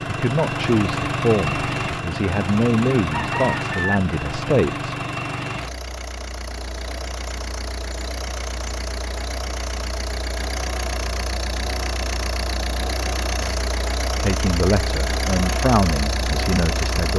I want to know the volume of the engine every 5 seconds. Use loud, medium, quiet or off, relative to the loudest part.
loud, medium, loud, loud.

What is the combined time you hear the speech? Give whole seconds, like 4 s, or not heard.
8 s.